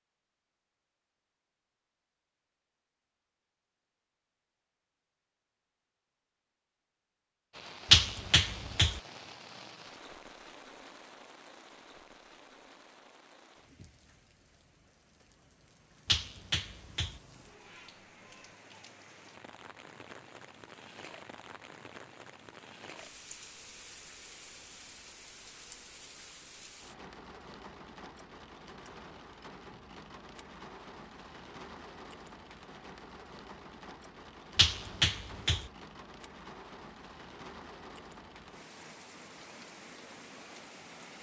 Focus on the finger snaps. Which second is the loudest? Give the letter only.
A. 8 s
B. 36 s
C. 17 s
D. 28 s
A.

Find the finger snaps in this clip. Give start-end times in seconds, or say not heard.
7.9-9.0, 16.1-17.2, 34.5-35.6.